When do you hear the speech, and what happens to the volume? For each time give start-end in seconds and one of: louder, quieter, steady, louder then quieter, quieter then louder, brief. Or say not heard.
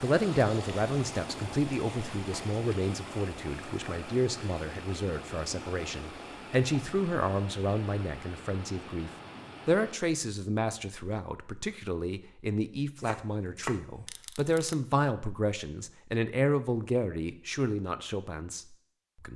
0.0-19.3 steady.